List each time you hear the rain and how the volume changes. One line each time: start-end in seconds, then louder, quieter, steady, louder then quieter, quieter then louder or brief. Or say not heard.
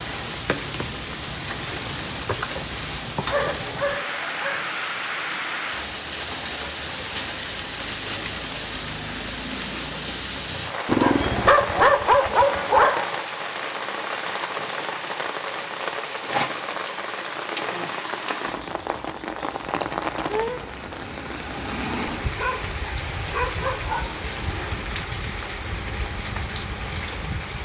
0.0-27.6 steady.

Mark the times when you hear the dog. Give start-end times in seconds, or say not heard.
3.2-4.7, 10.8-13.1, 22.4-24.8.